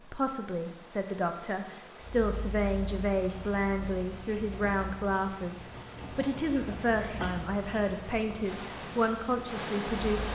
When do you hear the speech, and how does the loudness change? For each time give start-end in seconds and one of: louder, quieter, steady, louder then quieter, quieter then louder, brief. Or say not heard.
0.1-10.3 steady.